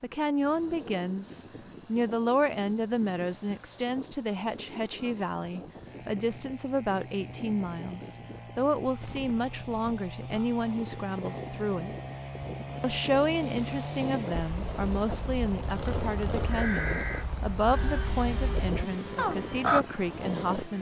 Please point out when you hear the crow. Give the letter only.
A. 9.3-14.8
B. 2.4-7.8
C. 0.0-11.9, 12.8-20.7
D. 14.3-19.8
D.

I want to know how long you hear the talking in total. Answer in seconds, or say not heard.
20 s.